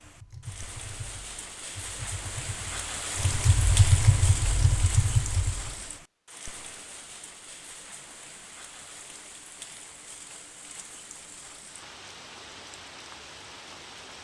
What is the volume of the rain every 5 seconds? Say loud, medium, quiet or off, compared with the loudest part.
loud, medium, medium.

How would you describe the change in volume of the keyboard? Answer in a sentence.
The volume of the keyboard goes up.